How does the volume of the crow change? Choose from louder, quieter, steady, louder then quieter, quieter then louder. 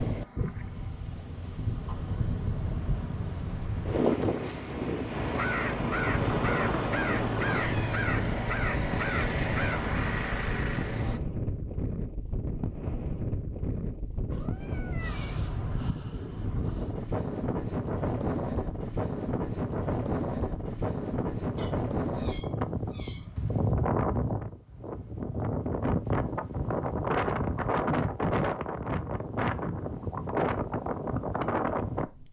steady.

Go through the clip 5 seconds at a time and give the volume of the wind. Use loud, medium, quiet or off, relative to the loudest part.
loud, loud, medium, loud, loud, loud, loud.